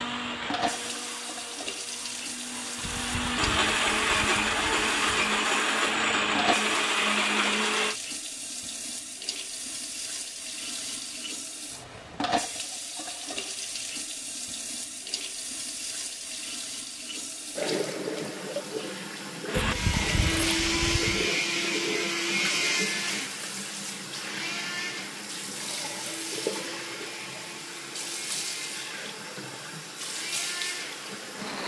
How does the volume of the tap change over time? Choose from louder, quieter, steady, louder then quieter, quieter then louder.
steady.